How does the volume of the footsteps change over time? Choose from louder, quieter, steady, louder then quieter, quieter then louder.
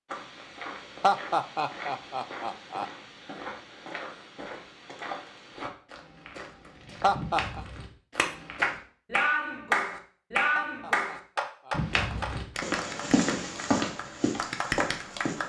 louder.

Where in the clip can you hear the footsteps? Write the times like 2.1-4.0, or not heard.
0.1-8.8, 11.7-15.4.